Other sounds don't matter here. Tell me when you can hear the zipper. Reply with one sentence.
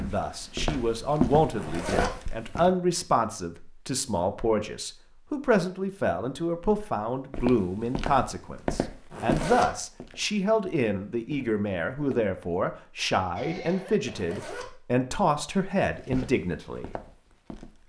You can hear the zipper from 1.5 to 2.1 s, from 9.1 to 9.7 s and from 14.1 to 14.7 s.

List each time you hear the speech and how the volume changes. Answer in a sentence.
The speech can be heard from 0.0 to 16.9 s, at a steady volume.